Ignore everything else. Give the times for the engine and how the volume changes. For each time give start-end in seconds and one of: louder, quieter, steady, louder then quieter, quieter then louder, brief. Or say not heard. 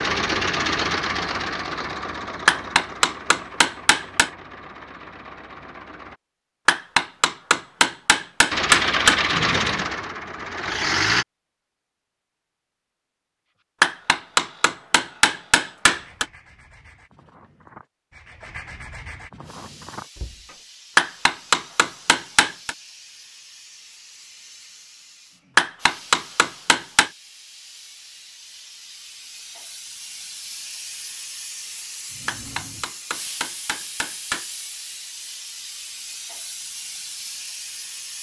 0.0-6.2 quieter
8.5-11.2 brief.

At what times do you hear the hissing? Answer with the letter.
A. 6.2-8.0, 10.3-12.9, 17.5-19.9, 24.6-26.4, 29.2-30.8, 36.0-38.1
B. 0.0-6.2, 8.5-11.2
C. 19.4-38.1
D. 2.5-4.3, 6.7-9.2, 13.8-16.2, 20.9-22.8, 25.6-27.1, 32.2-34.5
C.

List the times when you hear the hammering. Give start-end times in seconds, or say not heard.
2.5-4.3, 6.7-9.2, 13.8-16.2, 20.9-22.8, 25.6-27.1, 32.2-34.5.